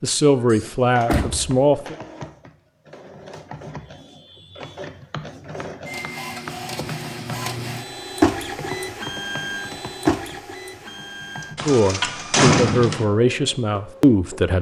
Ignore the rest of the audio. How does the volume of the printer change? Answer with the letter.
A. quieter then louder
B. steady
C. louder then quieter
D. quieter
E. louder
C.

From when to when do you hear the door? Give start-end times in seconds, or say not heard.
0.5-1.5, 11.6-13.1.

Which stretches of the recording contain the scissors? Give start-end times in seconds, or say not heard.
not heard.